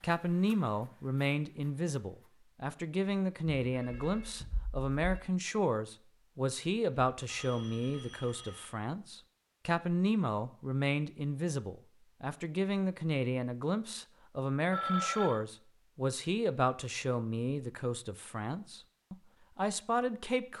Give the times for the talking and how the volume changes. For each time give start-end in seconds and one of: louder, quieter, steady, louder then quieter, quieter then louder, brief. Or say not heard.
0.0-20.5 steady.